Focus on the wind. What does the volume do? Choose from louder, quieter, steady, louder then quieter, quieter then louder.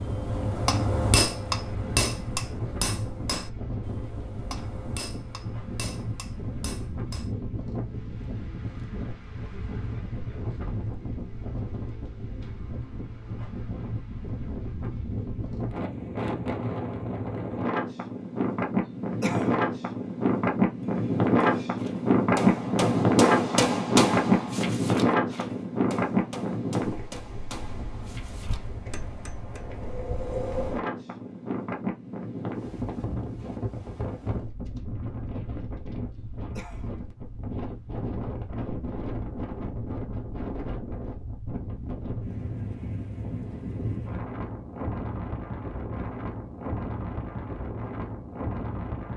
louder then quieter.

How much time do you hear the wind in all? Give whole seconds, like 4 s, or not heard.
49 s.